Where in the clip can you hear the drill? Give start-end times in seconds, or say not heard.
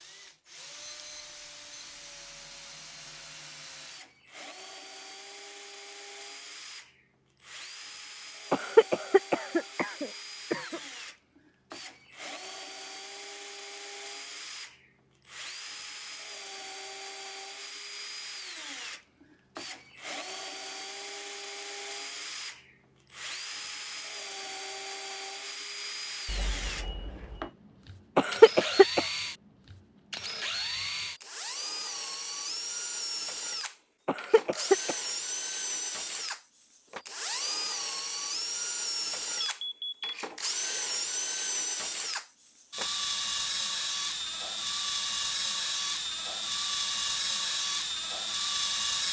0.0-49.0.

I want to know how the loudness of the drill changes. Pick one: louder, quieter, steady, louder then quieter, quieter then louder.
louder.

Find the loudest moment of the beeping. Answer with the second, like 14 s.
40 s.